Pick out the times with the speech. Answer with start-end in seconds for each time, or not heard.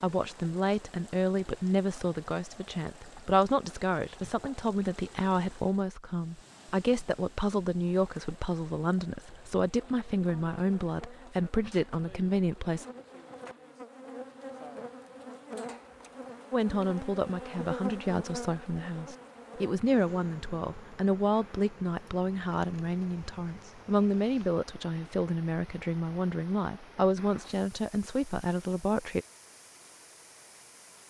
0.0-12.8, 16.5-29.2.